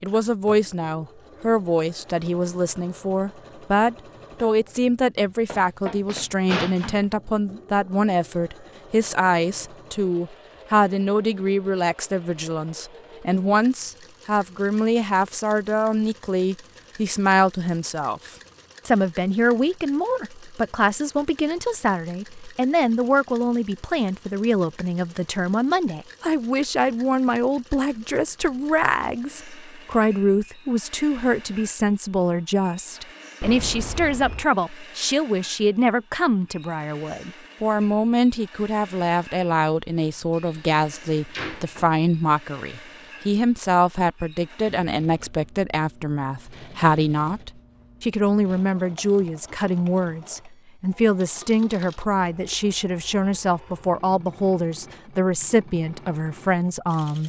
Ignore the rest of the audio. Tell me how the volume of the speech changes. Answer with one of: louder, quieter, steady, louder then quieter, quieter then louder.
steady.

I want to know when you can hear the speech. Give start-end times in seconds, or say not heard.
0.0-57.2.